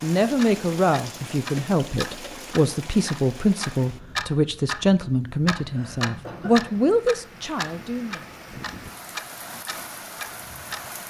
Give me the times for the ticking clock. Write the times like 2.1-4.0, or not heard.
0.3-10.8.